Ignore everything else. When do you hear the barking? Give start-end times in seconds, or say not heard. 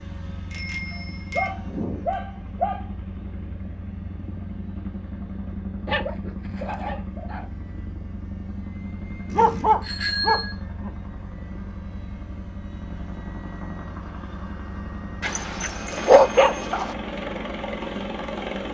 1.4-2.9, 5.8-7.5, 9.3-10.9, 15.2-16.9.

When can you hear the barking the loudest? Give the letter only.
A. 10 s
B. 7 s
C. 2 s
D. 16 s
D.